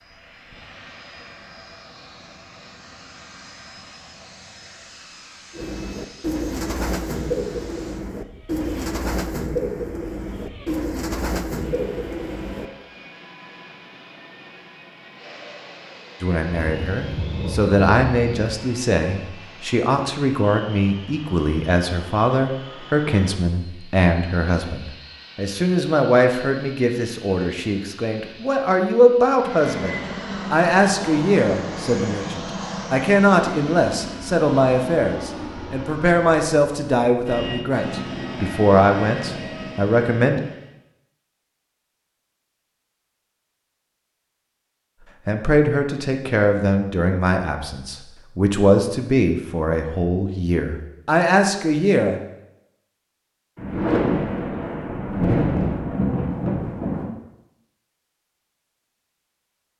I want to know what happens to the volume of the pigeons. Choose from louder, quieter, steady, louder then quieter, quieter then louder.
steady.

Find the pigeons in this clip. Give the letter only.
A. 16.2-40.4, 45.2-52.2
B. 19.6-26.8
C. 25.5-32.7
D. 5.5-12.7
D.